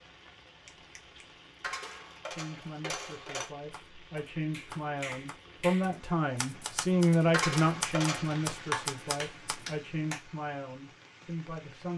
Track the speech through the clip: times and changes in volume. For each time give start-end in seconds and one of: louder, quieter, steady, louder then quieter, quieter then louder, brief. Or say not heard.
2.3-11.9 louder then quieter.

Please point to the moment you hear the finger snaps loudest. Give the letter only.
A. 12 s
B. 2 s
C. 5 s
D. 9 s
D.